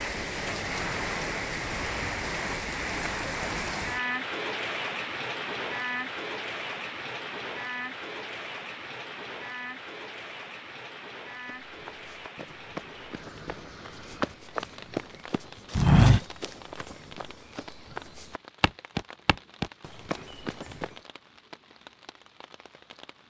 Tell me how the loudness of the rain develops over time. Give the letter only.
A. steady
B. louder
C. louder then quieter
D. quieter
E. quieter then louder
D.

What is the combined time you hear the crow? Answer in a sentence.
You can't hear the crow here.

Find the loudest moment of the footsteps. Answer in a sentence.
The loudest moment of the footsteps is at 16 seconds.